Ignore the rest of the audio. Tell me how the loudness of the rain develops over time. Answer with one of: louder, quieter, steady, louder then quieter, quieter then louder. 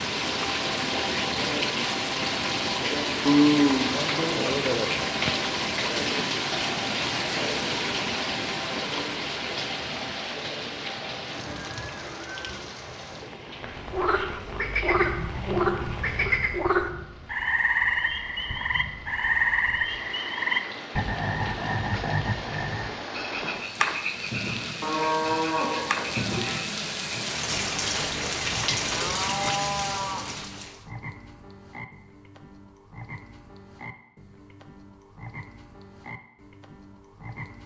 quieter then louder.